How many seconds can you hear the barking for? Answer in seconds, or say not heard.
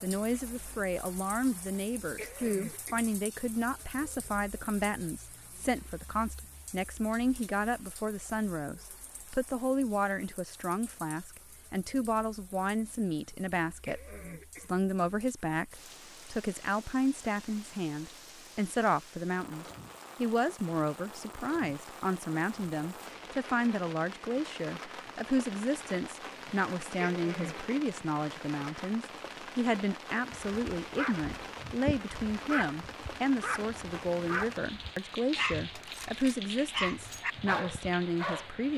8 s.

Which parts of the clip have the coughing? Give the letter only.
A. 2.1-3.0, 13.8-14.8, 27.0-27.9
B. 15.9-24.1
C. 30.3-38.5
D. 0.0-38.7
A.